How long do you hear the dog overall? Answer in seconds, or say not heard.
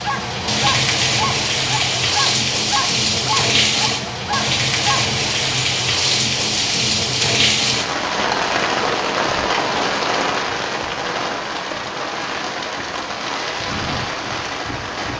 5 s.